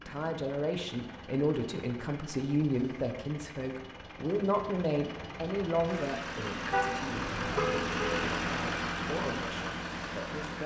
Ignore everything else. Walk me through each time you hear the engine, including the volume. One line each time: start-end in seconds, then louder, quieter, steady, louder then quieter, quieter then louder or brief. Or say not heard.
0.0-10.6 louder.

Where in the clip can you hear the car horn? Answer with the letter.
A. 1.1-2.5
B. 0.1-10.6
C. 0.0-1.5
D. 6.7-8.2
D.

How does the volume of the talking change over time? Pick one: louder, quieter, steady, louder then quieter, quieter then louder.
quieter.